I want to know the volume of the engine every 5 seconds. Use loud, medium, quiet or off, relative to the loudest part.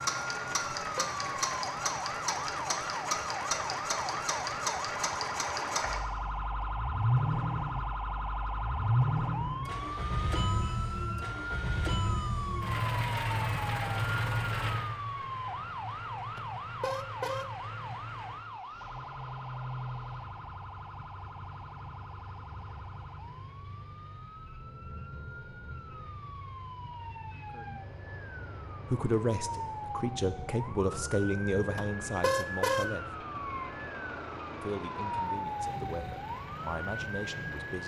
loud, loud, loud, medium, quiet, quiet, quiet, quiet.